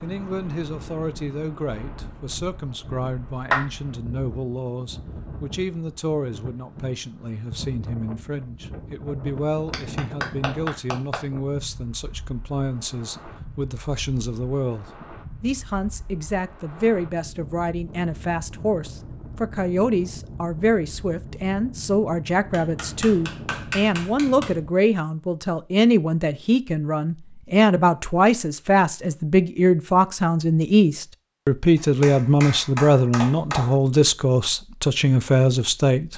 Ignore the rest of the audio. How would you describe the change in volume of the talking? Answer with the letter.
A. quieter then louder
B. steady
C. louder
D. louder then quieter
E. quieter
C.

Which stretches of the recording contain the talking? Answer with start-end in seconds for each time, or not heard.
0.0-36.1.